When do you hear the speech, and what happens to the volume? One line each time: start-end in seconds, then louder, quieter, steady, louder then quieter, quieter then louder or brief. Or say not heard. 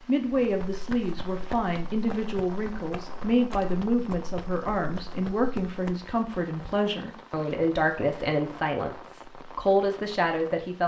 0.1-10.8 steady.